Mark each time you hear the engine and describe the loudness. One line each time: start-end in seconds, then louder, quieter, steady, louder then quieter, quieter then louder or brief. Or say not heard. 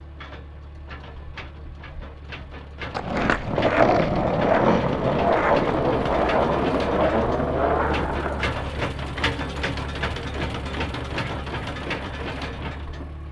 0.0-13.2 louder.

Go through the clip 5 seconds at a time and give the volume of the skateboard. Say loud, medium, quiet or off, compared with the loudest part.
loud, loud, off.